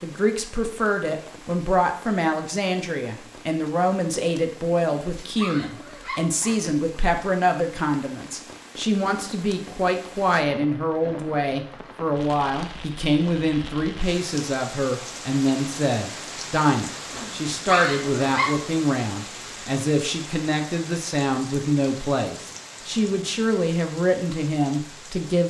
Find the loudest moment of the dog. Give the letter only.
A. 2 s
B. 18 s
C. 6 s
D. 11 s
B.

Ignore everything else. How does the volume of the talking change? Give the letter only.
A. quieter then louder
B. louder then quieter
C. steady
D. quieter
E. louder
C.